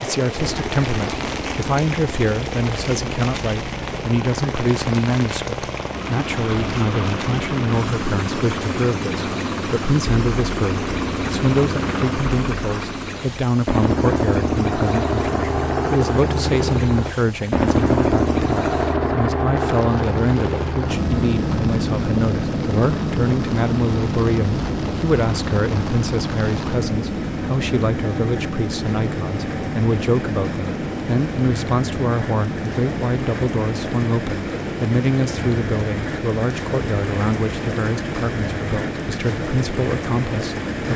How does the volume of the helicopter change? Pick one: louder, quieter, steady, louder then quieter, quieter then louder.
louder then quieter.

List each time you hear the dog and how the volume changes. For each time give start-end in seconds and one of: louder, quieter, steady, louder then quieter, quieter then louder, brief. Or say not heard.
not heard.